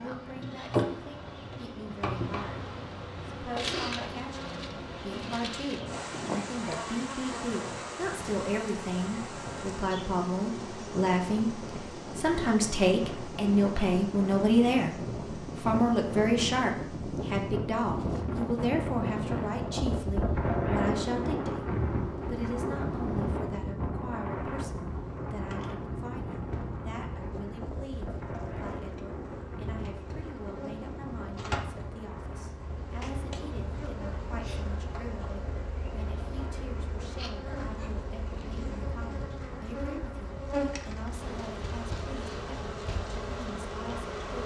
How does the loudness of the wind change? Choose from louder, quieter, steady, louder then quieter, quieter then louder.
louder then quieter.